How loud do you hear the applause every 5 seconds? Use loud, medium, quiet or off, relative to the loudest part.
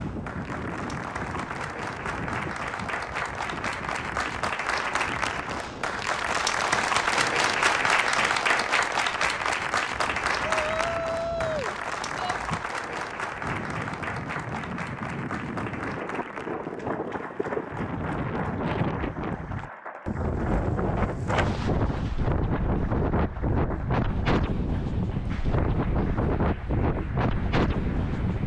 medium, loud, medium, quiet, quiet, quiet.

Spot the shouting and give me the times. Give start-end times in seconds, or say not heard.
10.4-12.4.